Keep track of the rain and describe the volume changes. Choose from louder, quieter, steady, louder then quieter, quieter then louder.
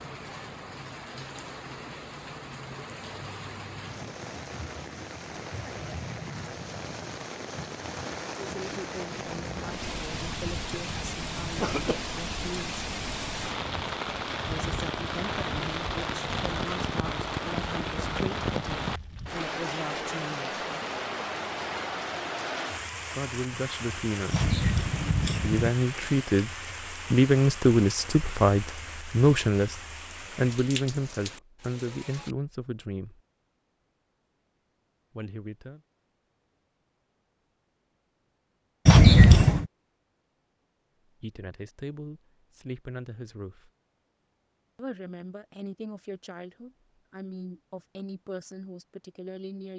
louder then quieter.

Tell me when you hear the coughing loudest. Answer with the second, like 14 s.
39 s.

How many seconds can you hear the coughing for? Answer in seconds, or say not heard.
4 s.